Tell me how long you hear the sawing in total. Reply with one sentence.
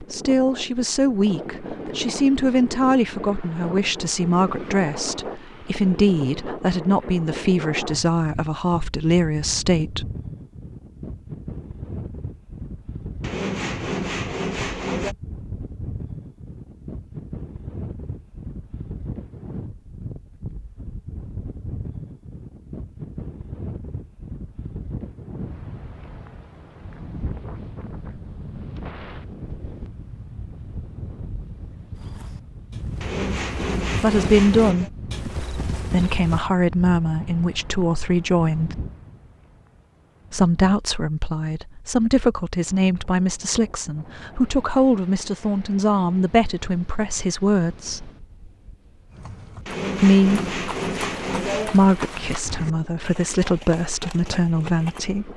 The sawing can be heard for 6 seconds in total.